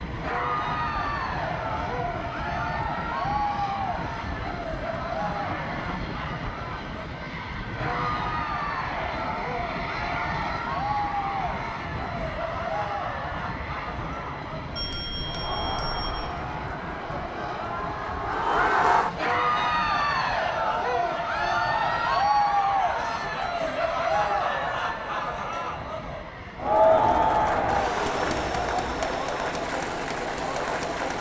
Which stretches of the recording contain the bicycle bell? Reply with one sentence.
You can hear the bicycle bell from 14.8 to 16.4 s.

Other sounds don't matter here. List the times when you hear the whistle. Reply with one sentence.
You can't hear the whistle here.